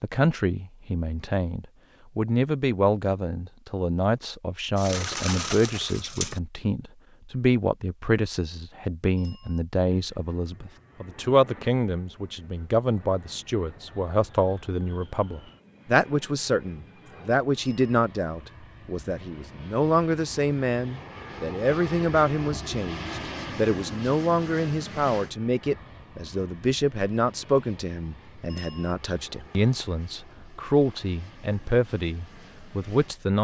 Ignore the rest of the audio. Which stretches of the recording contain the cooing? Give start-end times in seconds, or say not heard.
4.8-6.4.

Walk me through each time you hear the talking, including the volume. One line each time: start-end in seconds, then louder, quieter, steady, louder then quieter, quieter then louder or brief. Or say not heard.
0.0-33.4 steady.